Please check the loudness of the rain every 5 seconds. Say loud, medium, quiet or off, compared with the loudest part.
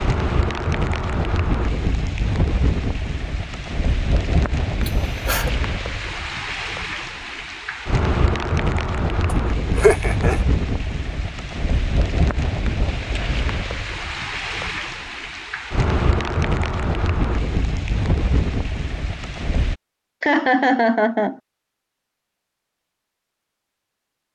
loud, loud, loud, loud, off.